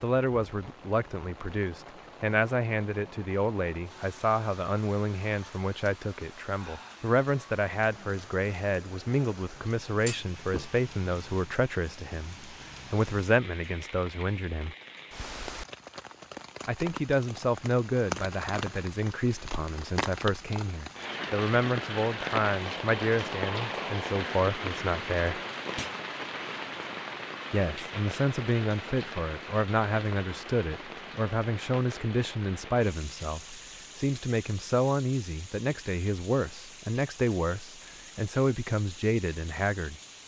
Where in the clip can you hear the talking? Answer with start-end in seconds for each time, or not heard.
0.0-14.8, 16.6-25.4, 27.5-40.0.